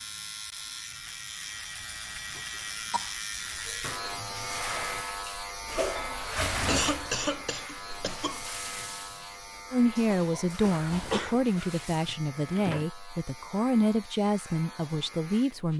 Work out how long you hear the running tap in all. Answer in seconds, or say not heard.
9 s.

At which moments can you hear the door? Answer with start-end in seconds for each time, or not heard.
12.1-12.8.